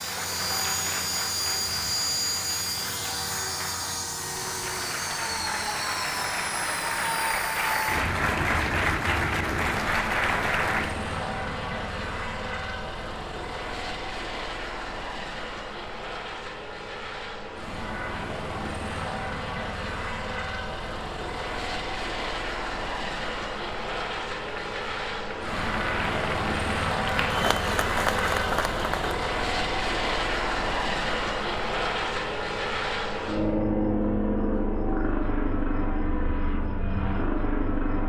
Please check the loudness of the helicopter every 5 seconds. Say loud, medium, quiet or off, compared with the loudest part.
loud, medium, medium, medium, medium, loud, loud, loud.